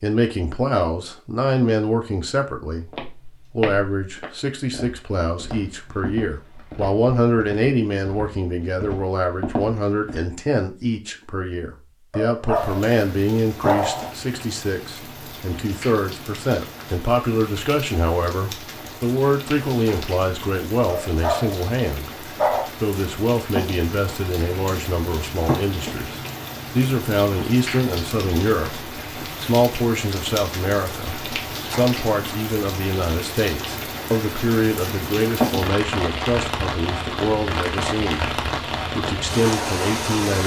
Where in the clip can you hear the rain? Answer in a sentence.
You can hear the rain from 12.6 to 40.4 s.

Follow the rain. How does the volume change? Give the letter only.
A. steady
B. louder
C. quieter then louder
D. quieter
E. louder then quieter
B.